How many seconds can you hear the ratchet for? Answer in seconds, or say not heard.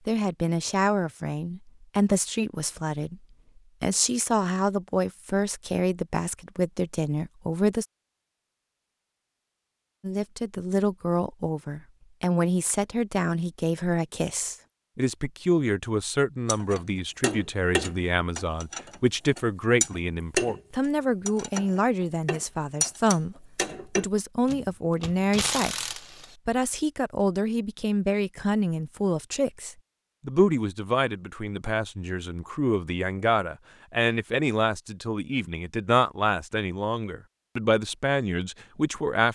9 s.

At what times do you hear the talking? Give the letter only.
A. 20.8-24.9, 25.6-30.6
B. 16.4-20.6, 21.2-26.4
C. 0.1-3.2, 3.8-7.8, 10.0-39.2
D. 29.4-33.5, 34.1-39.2
C.